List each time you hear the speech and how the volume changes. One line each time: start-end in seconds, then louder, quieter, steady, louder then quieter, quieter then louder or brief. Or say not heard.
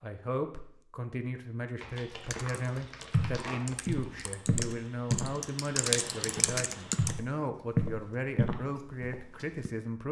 0.0-10.0 steady.